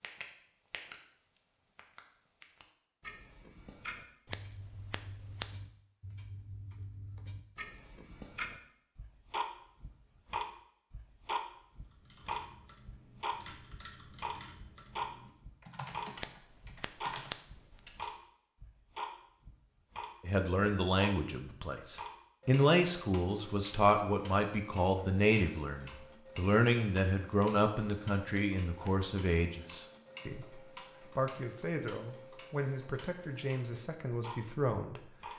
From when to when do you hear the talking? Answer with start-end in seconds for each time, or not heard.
20.2-35.1.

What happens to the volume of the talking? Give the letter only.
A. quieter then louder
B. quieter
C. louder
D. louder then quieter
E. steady
B.